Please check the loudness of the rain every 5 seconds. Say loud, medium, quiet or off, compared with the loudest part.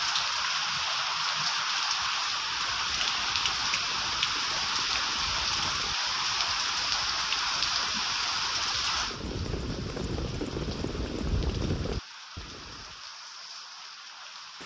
loud, loud, quiet.